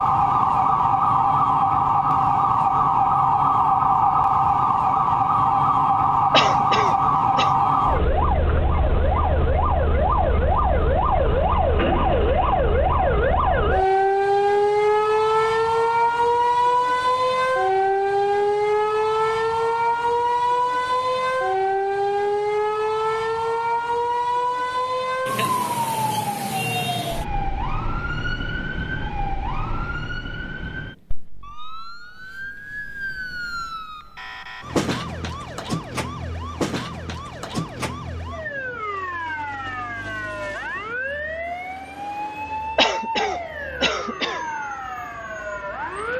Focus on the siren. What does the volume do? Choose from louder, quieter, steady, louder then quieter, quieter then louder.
quieter.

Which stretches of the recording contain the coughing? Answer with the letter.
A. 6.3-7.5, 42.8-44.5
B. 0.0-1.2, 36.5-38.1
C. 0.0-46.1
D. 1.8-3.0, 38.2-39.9
A.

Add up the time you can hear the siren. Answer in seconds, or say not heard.
46 s.